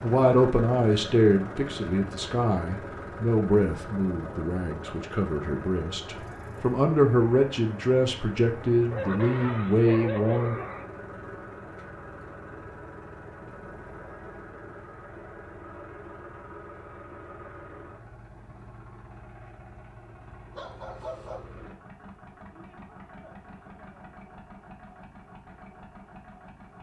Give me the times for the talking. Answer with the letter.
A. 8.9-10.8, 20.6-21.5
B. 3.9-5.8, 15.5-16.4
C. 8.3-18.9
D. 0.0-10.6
D.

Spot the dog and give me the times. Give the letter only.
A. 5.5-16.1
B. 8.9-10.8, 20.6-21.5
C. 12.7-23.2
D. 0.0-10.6
B.